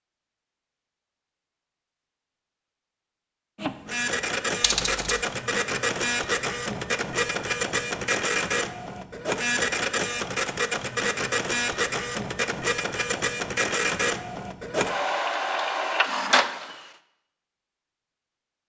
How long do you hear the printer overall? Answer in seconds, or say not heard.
13 s.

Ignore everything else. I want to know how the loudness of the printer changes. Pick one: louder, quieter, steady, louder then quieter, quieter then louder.
steady.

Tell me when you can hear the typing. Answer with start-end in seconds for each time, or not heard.
4.6-5.2.